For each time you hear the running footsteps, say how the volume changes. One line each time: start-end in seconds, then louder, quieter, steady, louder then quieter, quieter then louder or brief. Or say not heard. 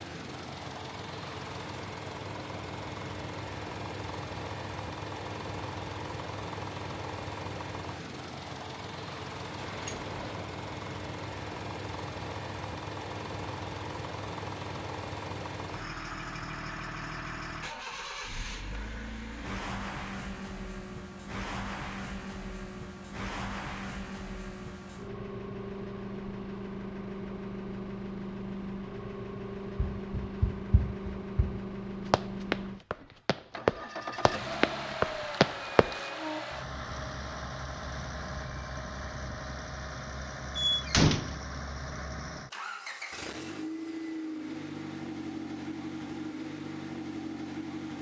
29.8-36.0 louder.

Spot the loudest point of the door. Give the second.
41 s.